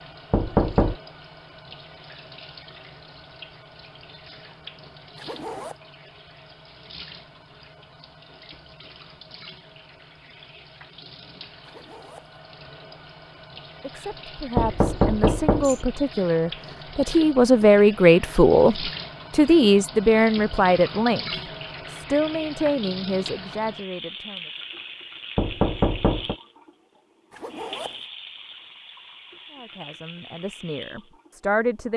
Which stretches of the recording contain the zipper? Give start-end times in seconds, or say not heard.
5.2-5.8, 11.7-12.3, 27.3-28.0.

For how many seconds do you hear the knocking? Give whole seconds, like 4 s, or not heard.
3 s.